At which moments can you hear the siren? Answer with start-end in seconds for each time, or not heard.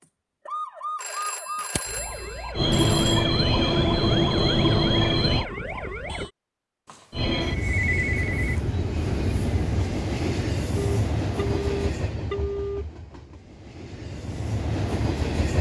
0.0-6.3.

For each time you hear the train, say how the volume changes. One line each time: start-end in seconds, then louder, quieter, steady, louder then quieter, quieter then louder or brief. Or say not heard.
2.5-5.5 brief
7.1-15.5 quieter then louder.